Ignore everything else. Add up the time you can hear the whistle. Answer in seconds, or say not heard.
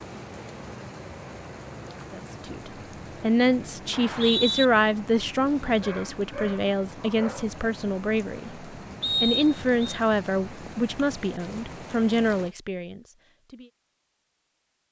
2 s.